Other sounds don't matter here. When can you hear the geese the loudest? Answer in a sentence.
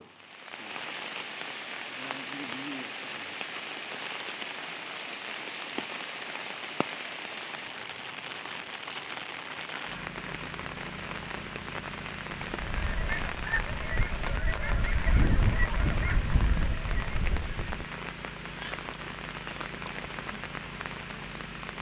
The volume of the geese peaks at 15 seconds.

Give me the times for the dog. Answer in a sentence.
The dog can't be heard in this clip.